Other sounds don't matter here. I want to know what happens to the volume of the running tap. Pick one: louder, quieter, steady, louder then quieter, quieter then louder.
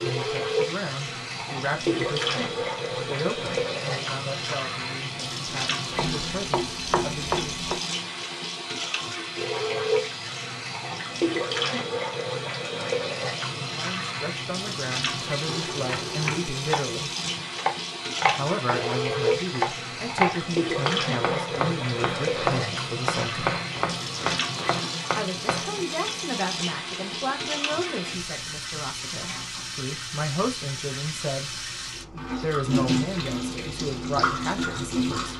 steady.